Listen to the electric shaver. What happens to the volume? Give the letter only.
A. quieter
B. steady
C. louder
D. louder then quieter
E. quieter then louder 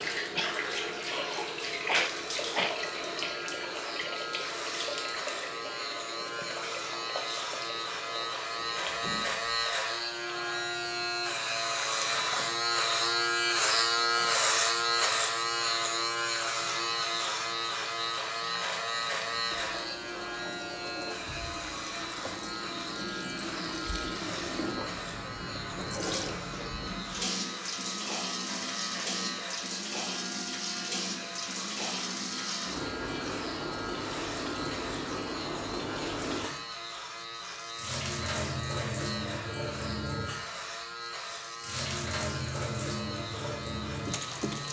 D.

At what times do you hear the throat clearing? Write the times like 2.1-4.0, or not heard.
0.3-2.8.